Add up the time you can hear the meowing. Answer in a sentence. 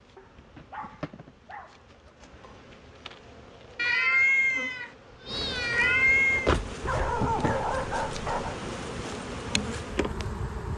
The meowing can be heard for 3 seconds in total.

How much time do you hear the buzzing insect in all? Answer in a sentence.
You can hear the buzzing insect for 11 seconds altogether.